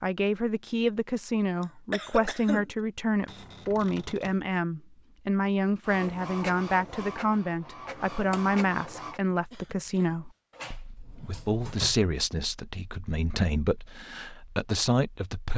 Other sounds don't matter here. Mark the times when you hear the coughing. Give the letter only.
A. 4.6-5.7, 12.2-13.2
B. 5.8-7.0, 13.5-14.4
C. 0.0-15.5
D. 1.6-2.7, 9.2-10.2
D.